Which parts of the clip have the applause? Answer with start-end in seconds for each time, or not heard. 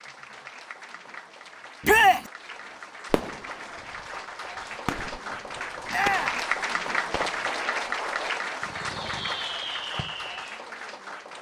0.0-11.3.